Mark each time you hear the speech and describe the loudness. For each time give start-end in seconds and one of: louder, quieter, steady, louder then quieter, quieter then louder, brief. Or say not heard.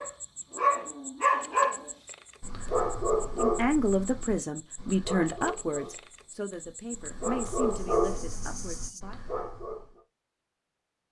3.4-9.2 quieter.